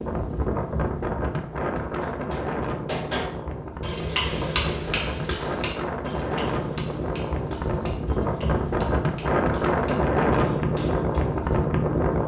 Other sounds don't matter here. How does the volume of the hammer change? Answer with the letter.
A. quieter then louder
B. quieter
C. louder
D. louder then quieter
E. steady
B.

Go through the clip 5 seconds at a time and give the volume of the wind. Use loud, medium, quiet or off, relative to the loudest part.
medium, loud, loud.